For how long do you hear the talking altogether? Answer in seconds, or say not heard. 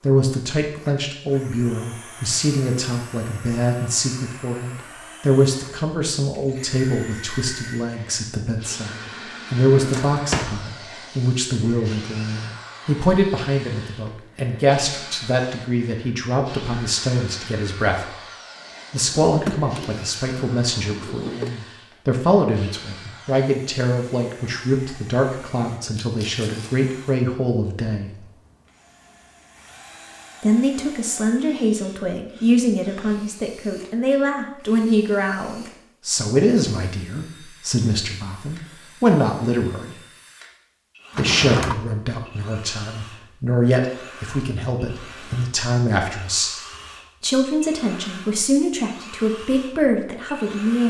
46 s.